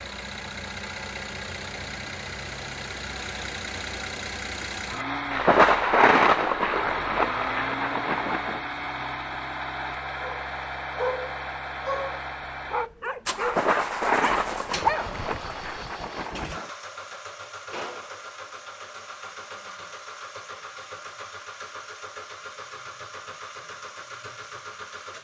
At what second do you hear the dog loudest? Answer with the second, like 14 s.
15 s.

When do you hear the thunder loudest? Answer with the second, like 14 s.
6 s.